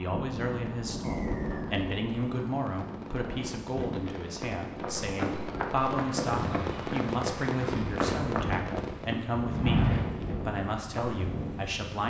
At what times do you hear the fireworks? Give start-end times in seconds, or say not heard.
0.6-9.2.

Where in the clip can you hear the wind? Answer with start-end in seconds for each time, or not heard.
0.0-12.0.